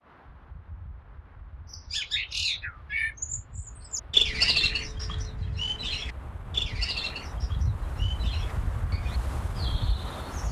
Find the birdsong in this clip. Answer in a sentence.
You can hear the birdsong from 1.7 to 10.4 s.